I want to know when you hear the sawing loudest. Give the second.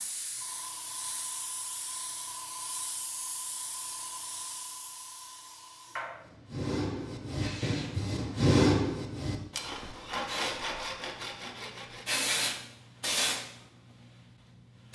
9 s.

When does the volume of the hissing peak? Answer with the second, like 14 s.
13 s.